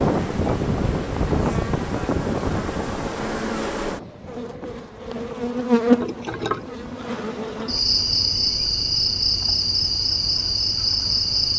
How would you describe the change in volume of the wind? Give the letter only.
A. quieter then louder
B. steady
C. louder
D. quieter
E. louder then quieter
D.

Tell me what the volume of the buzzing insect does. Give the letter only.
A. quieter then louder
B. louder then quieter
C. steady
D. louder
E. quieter
D.